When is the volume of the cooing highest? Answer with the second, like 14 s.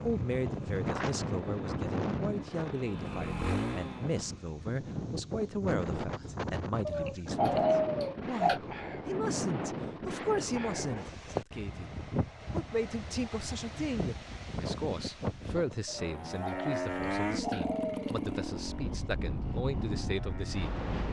8 s.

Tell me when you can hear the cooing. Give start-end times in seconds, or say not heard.
6.8-8.6, 15.8-18.1.